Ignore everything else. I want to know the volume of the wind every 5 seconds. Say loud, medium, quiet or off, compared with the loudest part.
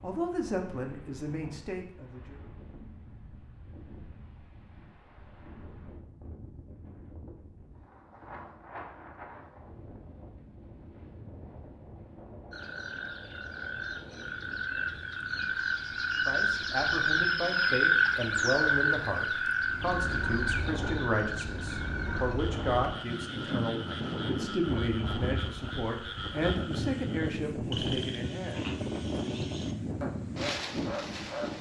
quiet, quiet, quiet, quiet, loud, loud, loud.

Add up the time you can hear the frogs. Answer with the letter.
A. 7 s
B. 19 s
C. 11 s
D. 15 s
B.